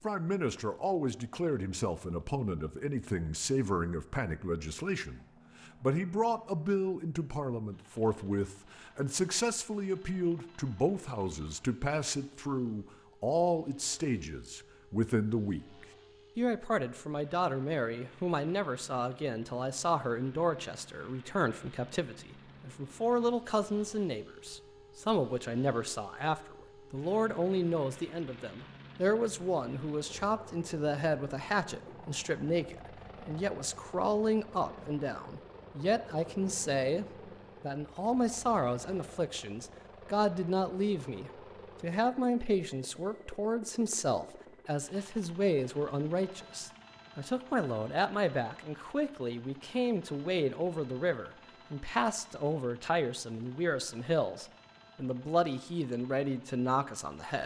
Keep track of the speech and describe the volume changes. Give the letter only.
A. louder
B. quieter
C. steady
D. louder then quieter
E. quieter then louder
C.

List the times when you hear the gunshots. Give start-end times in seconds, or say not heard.
not heard.